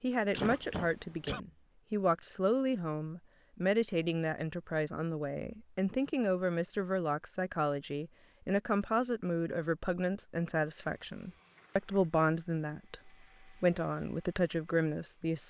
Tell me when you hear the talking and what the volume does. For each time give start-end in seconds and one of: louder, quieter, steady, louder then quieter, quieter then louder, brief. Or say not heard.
0.0-15.4 steady.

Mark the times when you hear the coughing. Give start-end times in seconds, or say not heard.
0.3-1.4.